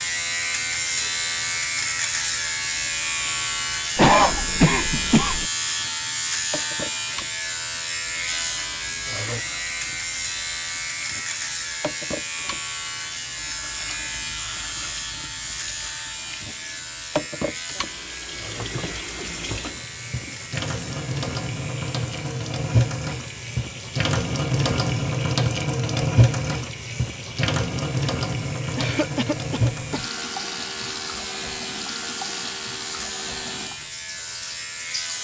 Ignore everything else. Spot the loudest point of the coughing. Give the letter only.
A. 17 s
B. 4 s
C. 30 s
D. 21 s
B.